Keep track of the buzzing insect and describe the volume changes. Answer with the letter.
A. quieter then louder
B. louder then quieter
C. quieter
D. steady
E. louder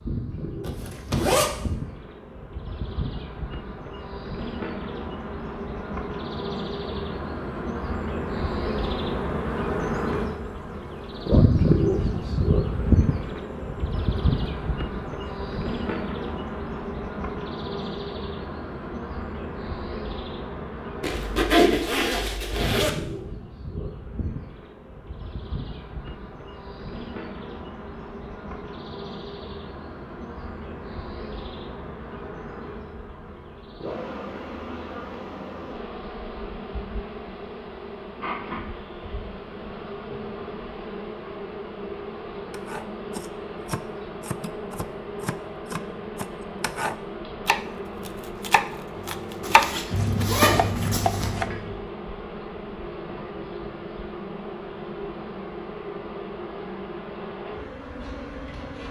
C.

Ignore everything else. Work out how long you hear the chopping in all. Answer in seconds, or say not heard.
9 s.